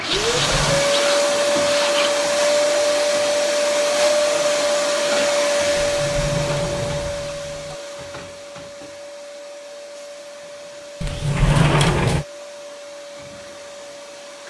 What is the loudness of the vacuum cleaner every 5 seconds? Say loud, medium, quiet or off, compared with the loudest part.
loud, medium, quiet.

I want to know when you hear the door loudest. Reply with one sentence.
The volume of the door peaks at 12 seconds.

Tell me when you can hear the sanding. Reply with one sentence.
You can hear the sanding from 0.0 to 2.2 s.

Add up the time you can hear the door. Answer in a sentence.
You can hear the door for 4 seconds altogether.